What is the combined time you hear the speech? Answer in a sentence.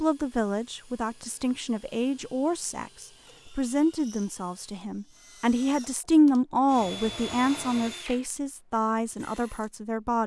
The speech can be heard for 10 seconds in total.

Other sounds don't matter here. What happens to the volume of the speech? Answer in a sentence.
The loudness of the speech goes up, then down.